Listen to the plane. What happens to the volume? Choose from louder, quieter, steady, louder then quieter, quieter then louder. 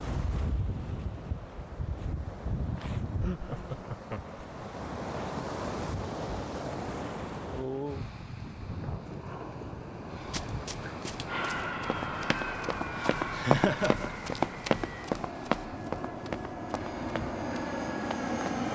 quieter then louder.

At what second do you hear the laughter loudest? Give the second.
14 s.